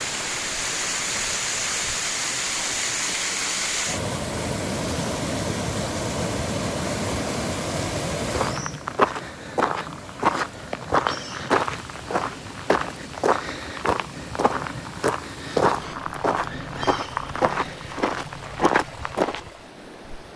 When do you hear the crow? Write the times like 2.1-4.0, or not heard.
not heard.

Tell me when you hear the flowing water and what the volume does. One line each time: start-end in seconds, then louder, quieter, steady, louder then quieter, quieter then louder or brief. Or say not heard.
0.0-20.3 quieter.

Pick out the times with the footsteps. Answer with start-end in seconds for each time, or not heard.
8.3-19.5.